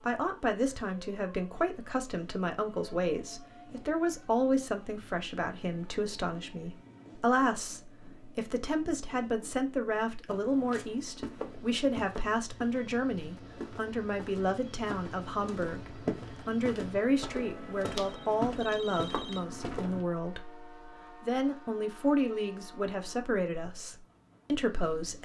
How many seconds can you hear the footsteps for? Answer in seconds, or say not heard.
10 s.